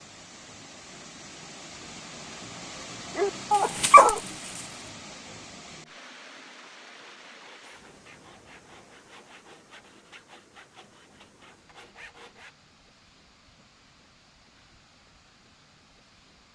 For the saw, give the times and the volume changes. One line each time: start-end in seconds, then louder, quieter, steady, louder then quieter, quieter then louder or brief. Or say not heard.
7.0-12.6 steady.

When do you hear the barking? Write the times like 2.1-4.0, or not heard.
3.1-4.7.